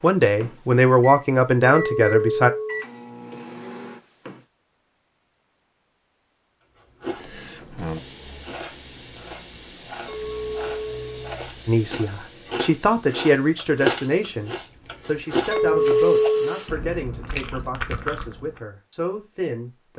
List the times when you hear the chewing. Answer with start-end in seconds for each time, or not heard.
6.8-18.6.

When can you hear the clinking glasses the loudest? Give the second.
16 s.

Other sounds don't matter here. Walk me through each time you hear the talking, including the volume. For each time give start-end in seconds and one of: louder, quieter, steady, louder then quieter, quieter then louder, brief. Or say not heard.
0.0-2.5 brief
11.7-19.9 quieter.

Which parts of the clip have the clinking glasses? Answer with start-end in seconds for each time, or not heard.
1.8-2.9, 10.1-11.3, 15.5-16.6.